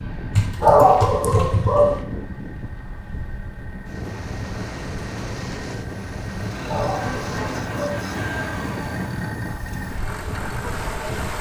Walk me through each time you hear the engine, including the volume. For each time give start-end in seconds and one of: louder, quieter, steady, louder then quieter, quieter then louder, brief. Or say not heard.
0.0-11.3 louder.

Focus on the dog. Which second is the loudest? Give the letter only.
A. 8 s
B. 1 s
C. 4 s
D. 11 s
B.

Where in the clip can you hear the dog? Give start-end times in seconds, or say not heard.
0.3-2.0, 6.5-8.1.